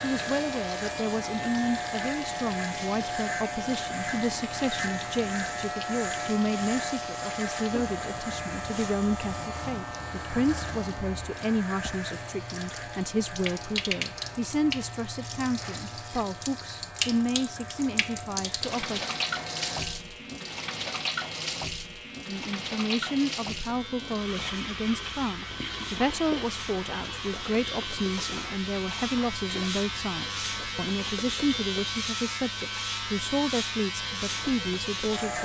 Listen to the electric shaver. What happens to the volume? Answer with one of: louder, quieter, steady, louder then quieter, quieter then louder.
quieter then louder.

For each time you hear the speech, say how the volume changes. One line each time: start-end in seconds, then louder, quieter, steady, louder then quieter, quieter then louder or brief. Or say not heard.
0.0-19.1 steady
22.2-35.3 steady.